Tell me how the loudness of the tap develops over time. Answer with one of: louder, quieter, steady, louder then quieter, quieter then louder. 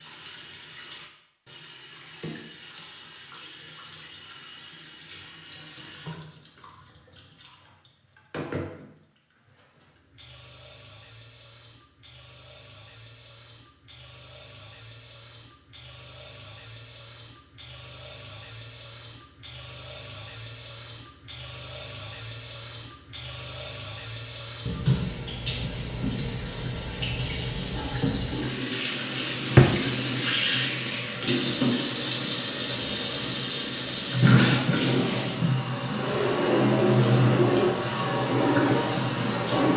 louder.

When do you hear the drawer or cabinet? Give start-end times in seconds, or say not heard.
29.2-29.7.